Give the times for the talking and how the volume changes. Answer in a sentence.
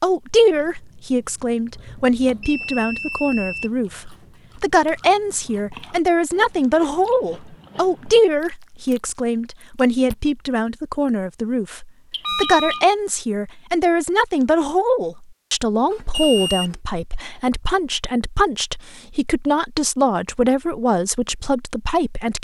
You can hear the talking from 0.0 to 22.3 s, at a steady volume.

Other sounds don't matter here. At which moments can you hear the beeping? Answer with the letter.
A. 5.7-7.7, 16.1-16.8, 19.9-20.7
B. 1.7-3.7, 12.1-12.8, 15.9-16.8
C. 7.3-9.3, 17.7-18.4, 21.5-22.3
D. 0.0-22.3
B.